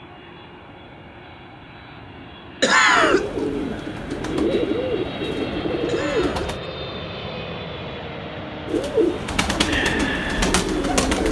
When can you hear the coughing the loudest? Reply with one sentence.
The volume of the coughing peaks at 3 seconds.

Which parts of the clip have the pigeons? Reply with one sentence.
The pigeons can be heard from 2.9 to 6.6 s and from 8.7 to 11.2 s.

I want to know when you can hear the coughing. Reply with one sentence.
The coughing can be heard from 2.6 to 3.2 s and from 5.8 to 6.5 s.